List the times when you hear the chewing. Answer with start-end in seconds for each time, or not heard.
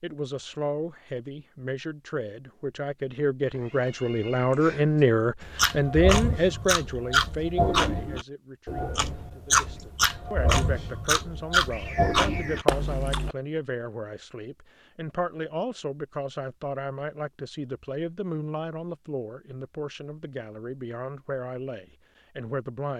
5.4-13.3.